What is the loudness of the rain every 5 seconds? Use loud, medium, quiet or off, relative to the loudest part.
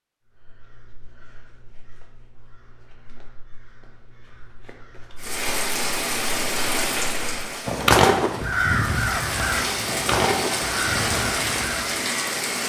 off, loud, loud.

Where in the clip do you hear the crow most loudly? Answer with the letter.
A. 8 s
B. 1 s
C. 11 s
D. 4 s
A.